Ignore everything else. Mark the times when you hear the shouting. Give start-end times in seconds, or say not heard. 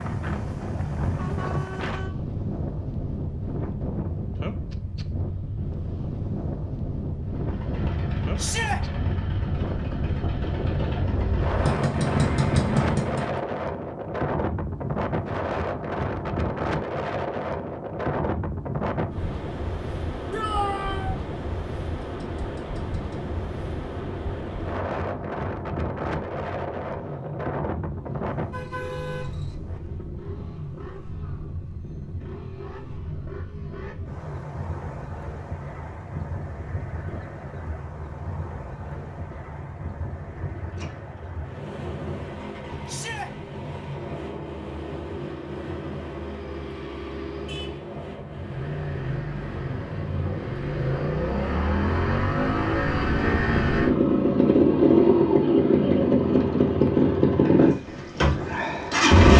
8.3-8.8, 20.3-21.1, 42.9-43.3.